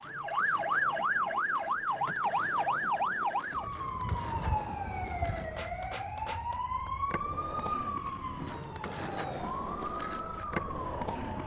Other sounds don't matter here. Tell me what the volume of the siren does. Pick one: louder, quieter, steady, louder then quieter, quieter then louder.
quieter.